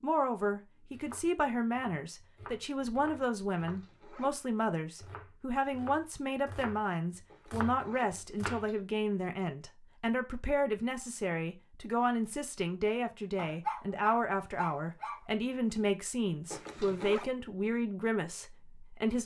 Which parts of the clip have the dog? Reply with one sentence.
You can hear the dog from 13.3 to 15.2 s.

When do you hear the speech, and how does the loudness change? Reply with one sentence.
You can hear the speech from 0.0 to 19.2 s, at a steady volume.